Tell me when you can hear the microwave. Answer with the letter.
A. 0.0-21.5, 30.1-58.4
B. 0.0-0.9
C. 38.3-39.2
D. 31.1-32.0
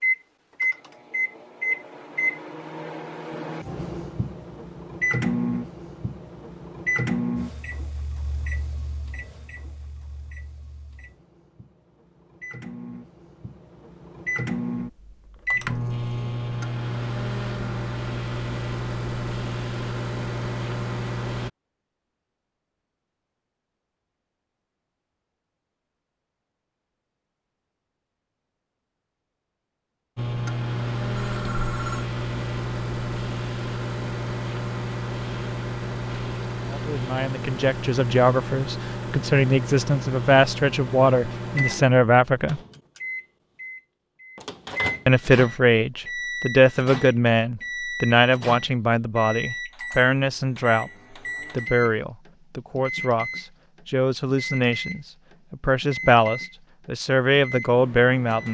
A.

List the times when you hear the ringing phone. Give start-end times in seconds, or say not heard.
31.1-32.0.